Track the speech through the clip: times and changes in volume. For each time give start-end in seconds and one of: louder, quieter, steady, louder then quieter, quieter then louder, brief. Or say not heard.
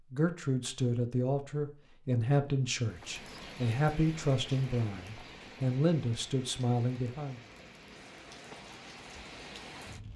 0.1-7.4 steady.